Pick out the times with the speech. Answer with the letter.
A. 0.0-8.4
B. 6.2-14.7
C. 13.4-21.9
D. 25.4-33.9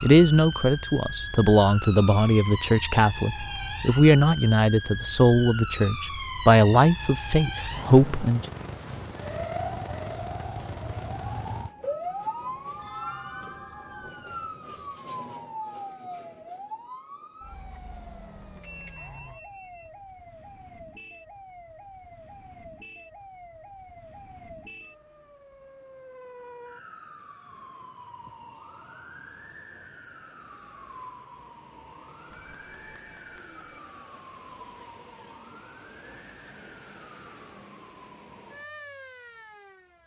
A.